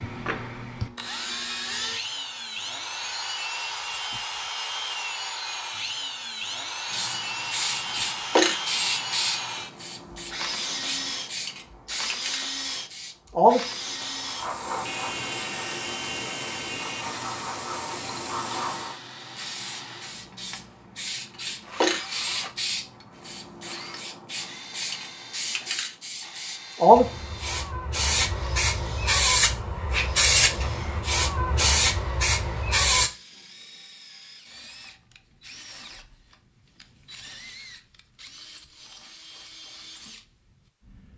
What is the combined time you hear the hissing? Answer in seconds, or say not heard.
26 s.